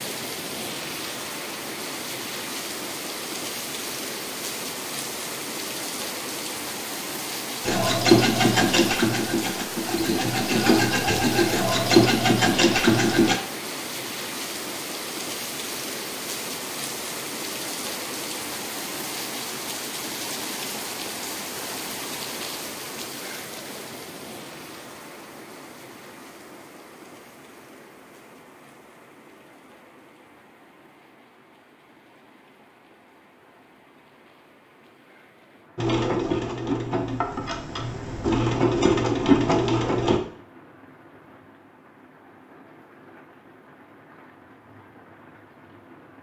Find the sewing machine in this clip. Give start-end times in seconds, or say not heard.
7.6-13.3, 35.8-40.2.